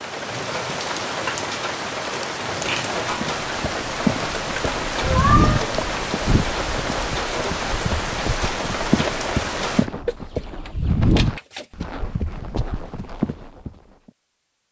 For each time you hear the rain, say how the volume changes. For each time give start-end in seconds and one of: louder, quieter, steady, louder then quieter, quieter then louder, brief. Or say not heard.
0.0-9.9 steady.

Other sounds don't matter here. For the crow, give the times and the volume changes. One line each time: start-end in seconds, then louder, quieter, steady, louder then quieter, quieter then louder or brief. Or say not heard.
not heard.